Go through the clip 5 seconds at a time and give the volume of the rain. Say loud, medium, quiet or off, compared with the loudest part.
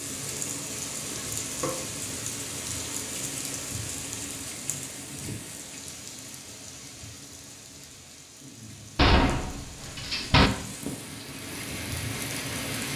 loud, medium, loud.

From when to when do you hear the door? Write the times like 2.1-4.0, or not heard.
8.9-10.5.